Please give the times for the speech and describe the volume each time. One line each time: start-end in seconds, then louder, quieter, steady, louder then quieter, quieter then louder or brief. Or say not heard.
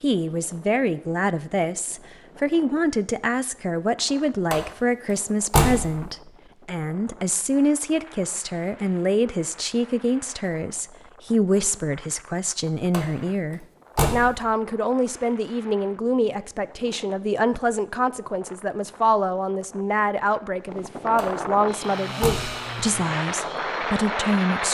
0.0-24.6 steady.